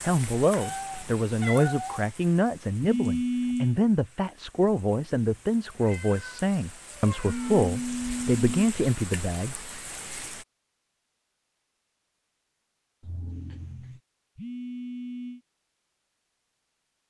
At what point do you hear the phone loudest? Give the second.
3 s.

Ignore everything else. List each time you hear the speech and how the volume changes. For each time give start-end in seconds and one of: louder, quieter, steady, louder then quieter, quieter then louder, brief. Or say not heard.
0.0-9.7 steady.